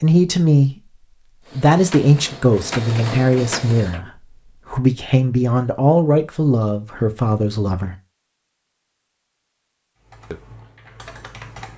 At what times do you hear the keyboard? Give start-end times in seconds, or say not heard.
10.0-11.7.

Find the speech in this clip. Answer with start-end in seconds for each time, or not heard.
0.0-0.8, 1.6-8.0.